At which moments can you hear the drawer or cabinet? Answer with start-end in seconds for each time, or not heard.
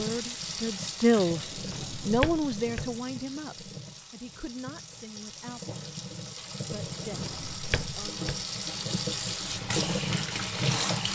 1.2-3.0, 6.8-8.4.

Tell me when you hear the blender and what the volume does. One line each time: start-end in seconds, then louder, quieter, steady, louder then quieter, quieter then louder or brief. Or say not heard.
not heard.